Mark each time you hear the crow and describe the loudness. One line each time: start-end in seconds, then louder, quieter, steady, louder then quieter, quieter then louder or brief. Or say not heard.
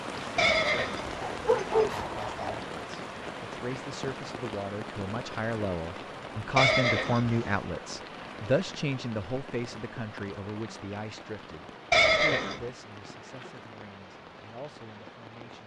not heard.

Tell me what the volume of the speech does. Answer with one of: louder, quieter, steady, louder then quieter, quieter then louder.
louder then quieter.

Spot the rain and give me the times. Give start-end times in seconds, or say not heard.
0.0-15.6.